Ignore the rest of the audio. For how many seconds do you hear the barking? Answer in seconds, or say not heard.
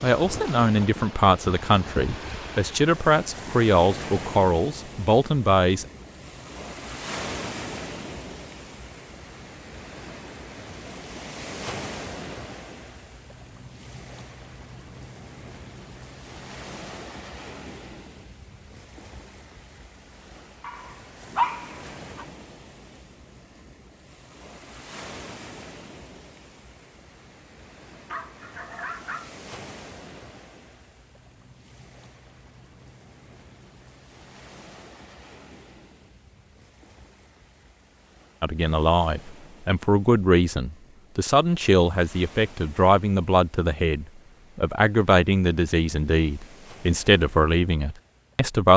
3 s.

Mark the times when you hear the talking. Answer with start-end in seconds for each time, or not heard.
0.0-5.8, 38.4-48.7.